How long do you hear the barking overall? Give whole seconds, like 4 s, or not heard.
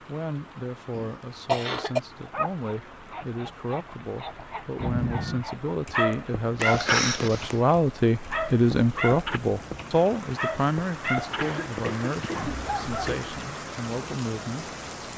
11 s.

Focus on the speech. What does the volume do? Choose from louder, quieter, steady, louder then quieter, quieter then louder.
louder then quieter.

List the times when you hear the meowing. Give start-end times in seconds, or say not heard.
4.8-5.5.